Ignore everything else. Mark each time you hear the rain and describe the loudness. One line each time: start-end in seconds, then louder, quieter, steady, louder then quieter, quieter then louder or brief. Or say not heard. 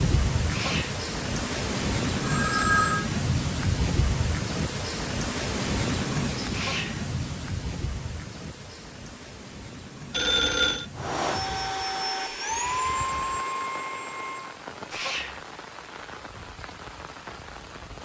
0.0-18.0 quieter.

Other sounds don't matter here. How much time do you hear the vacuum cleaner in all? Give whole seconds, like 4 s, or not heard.
4 s.